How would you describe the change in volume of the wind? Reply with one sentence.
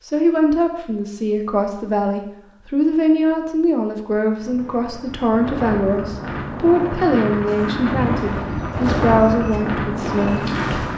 The loudness of the wind goes up.